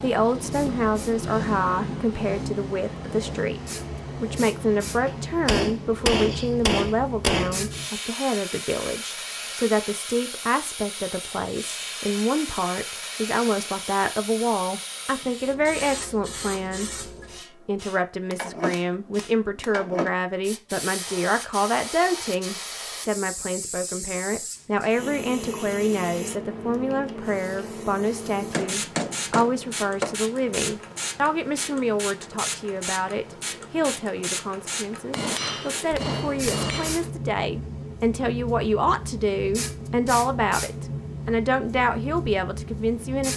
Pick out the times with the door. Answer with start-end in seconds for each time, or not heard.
not heard.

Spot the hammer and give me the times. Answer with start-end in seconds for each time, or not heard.
5.0-7.6, 18.3-19.8, 28.4-30.1, 35.1-37.1.